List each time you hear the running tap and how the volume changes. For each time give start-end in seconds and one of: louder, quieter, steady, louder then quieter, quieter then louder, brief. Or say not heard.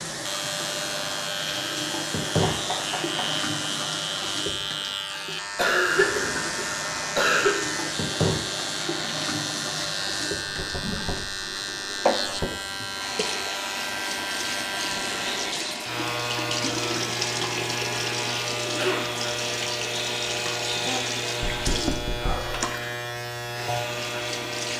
0.0-24.7 steady.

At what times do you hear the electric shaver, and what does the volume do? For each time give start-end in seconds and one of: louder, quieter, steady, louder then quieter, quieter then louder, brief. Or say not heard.
0.0-24.7 steady.